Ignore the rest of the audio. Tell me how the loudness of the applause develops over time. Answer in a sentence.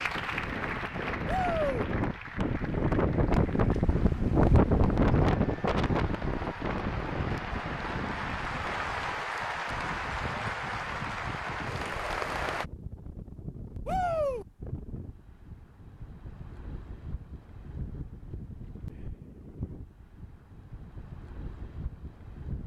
The volume of the applause goes down, then up.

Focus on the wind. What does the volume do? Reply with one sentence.
The volume of the wind goes down.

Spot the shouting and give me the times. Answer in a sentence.
The shouting can be heard from 1.2 to 1.9 s and from 13.8 to 14.4 s.